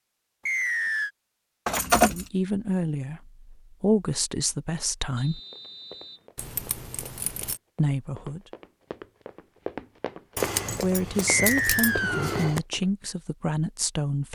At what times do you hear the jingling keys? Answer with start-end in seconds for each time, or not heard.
1.6-2.3, 6.3-7.6, 10.3-12.6.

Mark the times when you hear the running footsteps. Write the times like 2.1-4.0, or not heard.
5.5-12.9.